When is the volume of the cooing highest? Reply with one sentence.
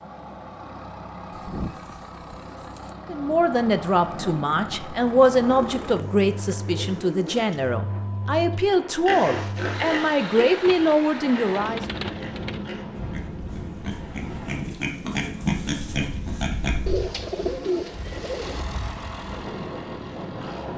The loudest moment of the cooing is at 18 seconds.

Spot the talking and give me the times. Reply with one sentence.
The talking can be heard from 3.0 to 11.8 s.